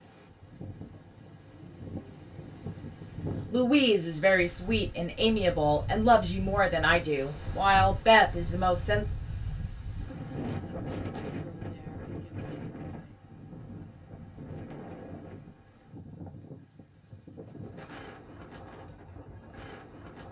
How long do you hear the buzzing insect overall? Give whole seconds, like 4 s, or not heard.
not heard.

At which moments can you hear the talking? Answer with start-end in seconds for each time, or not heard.
3.5-9.1.